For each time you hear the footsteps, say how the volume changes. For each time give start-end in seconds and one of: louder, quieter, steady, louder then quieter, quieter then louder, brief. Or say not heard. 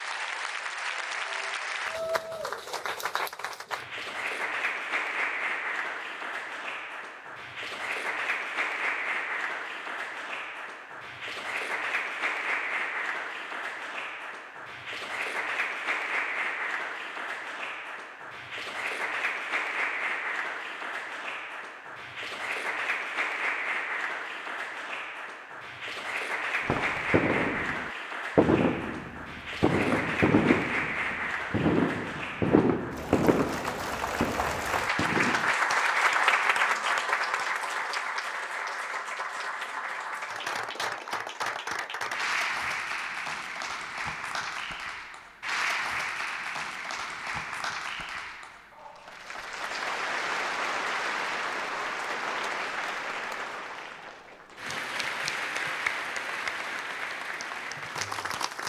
not heard.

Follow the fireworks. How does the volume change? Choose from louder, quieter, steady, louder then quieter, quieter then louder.
quieter.